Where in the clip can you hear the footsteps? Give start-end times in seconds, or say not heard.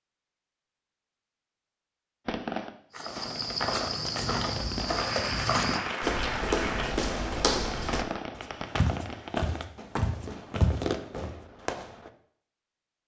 2.9-11.3.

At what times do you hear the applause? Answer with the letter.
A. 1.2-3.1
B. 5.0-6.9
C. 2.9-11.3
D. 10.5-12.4
B.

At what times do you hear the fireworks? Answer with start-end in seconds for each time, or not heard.
2.2-12.1.